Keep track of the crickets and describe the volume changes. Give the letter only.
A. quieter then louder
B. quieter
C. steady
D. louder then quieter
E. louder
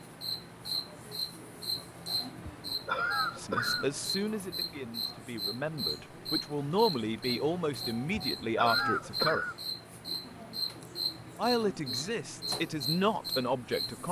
C.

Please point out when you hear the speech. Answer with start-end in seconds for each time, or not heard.
3.4-9.4, 11.3-14.0.